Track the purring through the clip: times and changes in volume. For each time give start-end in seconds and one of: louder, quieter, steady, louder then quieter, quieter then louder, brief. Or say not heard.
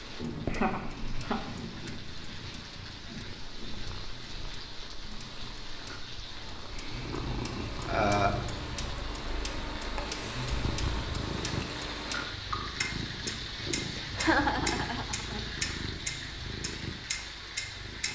0.2-18.1 louder.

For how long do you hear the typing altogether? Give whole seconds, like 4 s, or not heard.
not heard.